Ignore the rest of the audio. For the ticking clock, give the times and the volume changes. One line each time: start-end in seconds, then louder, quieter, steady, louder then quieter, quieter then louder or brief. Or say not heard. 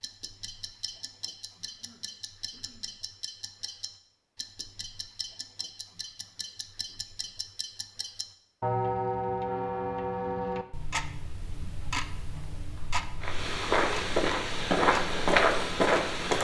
0.0-16.3 louder then quieter.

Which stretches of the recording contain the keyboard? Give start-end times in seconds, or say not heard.
not heard.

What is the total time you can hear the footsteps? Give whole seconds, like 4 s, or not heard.
3 s.